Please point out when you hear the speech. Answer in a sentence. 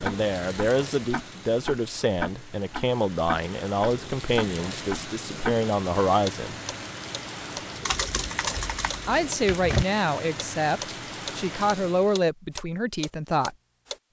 The speech can be heard from 0.0 to 6.5 s and from 9.1 to 13.6 s.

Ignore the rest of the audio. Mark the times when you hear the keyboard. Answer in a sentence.
The keyboard can be heard from 7.8 to 9.8 s.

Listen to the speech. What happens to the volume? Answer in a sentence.
The volume of the speech stays about the same.